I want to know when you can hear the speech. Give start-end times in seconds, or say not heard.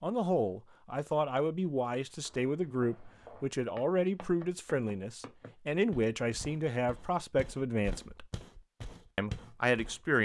0.0-8.2, 9.2-10.2.